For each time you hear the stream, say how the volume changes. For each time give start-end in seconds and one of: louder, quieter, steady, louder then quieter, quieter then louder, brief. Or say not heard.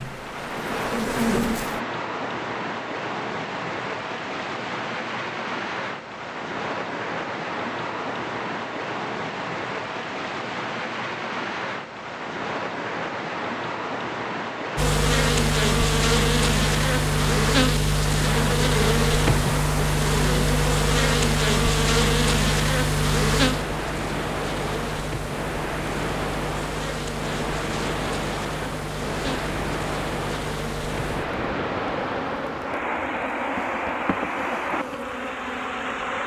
0.0-36.2 steady.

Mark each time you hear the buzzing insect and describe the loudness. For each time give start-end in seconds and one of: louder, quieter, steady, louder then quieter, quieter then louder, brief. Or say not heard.
0.0-1.8 brief
14.8-36.2 quieter.